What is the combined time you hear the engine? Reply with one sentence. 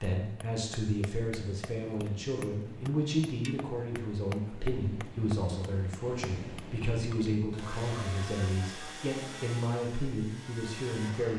You can hear the engine for 4 seconds altogether.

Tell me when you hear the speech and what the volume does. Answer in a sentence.
The speech can be heard from 0.0 to 11.3 s, at a steady volume.